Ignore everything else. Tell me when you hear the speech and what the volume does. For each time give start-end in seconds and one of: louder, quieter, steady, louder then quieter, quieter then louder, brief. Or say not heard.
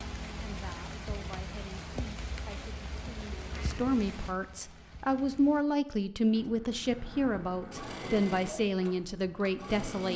0.4-10.1 louder.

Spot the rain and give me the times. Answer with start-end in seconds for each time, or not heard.
0.0-5.7.